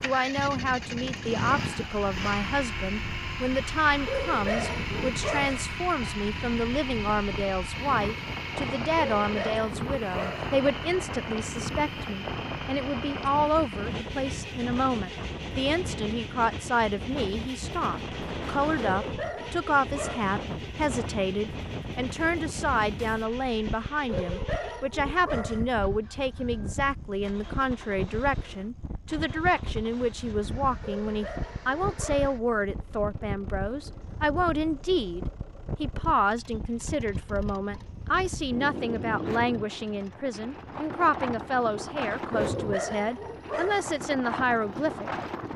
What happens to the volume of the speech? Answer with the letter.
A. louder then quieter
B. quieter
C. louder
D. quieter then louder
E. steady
E.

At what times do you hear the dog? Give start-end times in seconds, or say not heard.
4.0-5.7, 8.9-10.6, 18.9-20.4, 24.1-25.6, 31.0-32.4, 42.3-43.9.